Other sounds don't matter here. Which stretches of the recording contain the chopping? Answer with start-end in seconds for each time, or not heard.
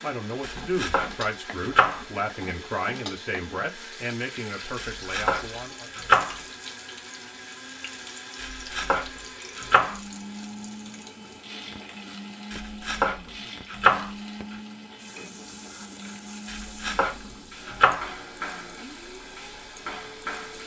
0.4-2.0, 4.8-6.3, 8.3-10.0, 12.5-14.1, 16.4-18.1.